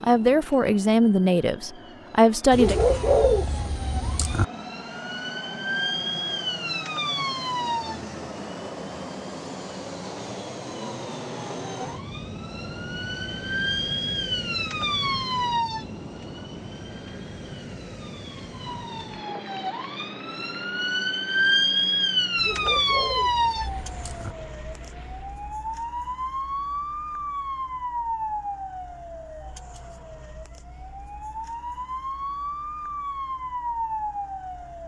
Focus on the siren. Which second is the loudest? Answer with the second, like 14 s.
22 s.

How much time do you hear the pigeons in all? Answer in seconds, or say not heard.
4 s.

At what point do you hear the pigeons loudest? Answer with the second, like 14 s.
3 s.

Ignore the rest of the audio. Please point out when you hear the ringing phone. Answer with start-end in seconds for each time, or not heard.
not heard.